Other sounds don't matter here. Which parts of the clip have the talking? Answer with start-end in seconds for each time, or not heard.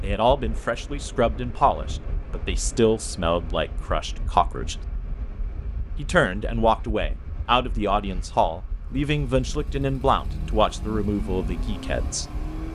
0.0-4.8, 6.0-12.2.